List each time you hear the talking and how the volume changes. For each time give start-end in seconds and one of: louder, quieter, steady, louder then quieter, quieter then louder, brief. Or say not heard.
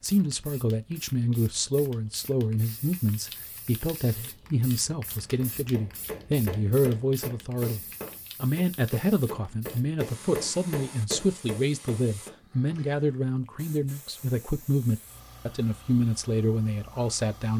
0.0-17.5 steady.